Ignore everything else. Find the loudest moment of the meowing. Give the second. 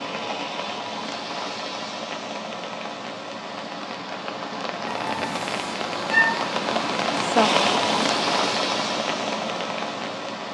6 s.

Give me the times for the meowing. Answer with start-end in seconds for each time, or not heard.
4.8-6.4.